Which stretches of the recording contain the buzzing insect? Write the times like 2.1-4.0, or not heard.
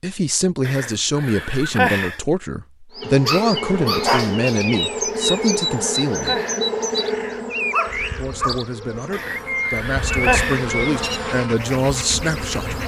2.9-12.8.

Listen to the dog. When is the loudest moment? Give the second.
4 s.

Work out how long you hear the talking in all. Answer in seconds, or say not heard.
11 s.